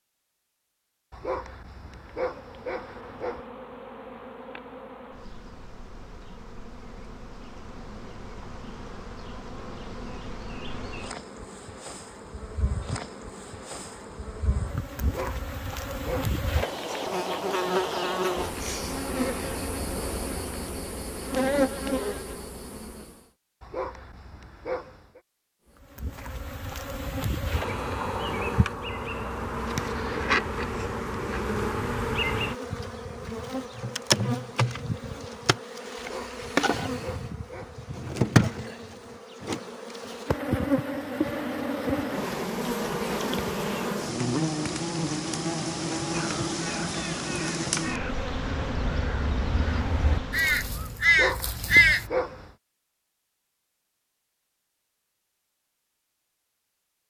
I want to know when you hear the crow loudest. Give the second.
52 s.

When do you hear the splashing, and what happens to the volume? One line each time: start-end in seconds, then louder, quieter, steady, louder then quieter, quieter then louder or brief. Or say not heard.
not heard.